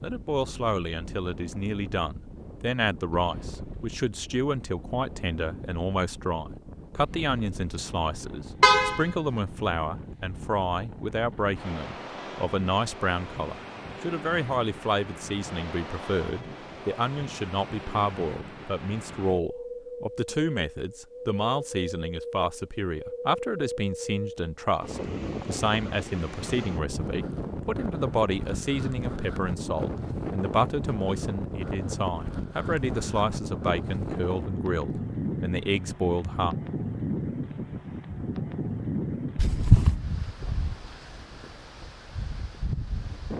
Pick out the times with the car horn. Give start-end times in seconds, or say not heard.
8.6-9.0, 39.4-40.0.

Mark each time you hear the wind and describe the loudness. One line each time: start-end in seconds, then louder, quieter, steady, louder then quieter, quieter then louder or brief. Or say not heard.
0.0-43.3 louder.